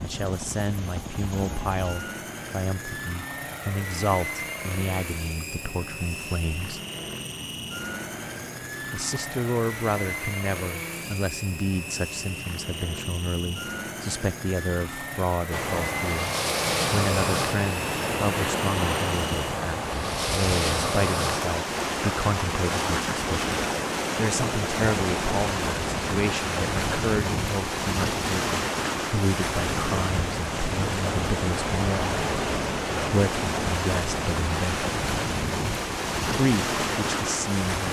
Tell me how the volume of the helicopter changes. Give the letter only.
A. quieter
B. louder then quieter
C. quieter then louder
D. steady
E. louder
D.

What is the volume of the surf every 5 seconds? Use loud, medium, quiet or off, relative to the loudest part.
off, off, off, loud, loud, loud, loud, loud.